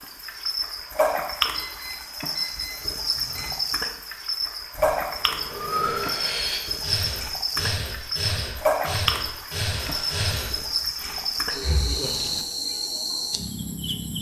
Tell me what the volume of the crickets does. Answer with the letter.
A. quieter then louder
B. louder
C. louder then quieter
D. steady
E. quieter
D.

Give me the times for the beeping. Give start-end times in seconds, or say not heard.
1.6-3.5, 9.8-10.6.